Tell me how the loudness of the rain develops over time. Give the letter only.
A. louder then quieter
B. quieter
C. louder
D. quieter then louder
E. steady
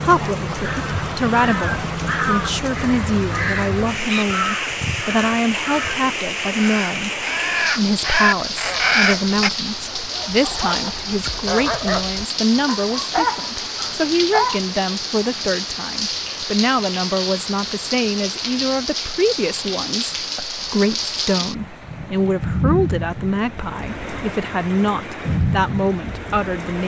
E.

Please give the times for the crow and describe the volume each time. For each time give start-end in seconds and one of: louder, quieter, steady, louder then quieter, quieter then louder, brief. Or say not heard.
0.6-9.5 louder.